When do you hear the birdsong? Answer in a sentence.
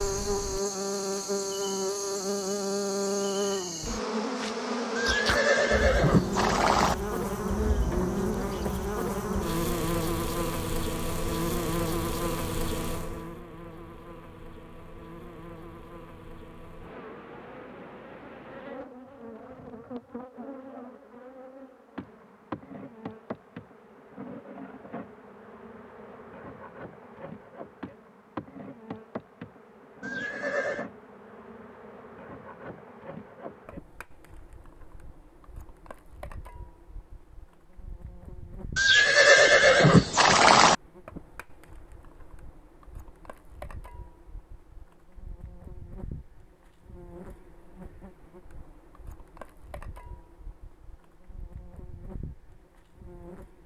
The birdsong can't be heard in this clip.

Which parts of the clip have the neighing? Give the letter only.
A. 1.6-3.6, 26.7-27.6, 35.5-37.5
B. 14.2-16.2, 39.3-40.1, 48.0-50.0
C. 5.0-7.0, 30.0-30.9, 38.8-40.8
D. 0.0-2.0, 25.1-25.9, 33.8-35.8
C.